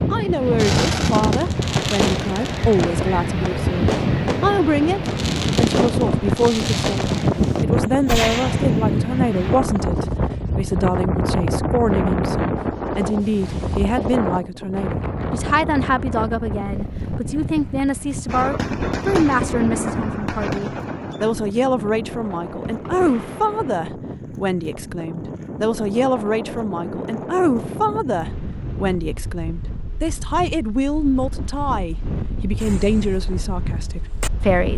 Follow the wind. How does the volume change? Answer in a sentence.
The volume of the wind goes down.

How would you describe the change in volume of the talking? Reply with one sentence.
The loudness of the talking stays about the same.